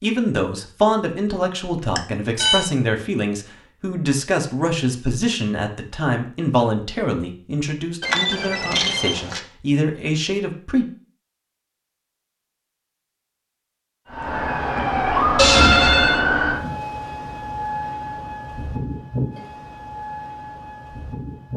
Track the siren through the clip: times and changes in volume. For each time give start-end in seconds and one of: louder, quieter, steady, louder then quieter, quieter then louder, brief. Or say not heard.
14.1-21.5 quieter.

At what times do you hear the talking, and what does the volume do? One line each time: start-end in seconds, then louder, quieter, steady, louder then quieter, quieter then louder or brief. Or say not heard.
0.0-10.8 steady.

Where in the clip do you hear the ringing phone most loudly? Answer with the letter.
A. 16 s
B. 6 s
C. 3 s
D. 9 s
A.